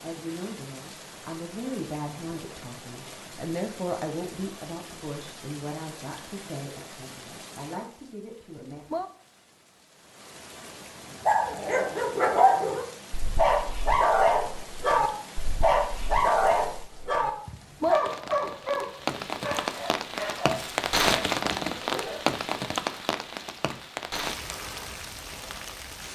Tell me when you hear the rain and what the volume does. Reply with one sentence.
The rain can be heard from 0.0 to 26.0 s, getting louder.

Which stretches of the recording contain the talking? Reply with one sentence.
You can hear the talking from 0.0 to 8.8 s.